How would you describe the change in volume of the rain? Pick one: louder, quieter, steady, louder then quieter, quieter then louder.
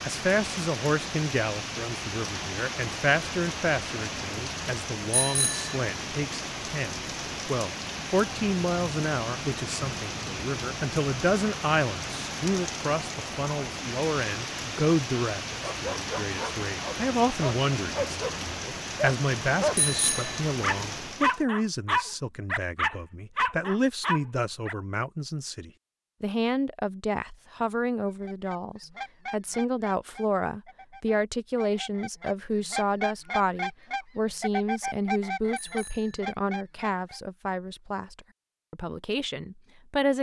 steady.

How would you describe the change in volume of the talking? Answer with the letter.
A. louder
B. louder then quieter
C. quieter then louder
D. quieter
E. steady
E.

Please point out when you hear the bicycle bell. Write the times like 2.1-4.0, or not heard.
5.1-5.8, 19.8-20.4, 35.5-36.2.